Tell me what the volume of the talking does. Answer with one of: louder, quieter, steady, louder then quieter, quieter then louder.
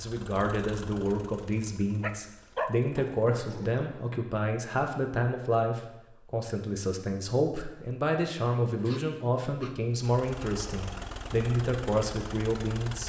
steady.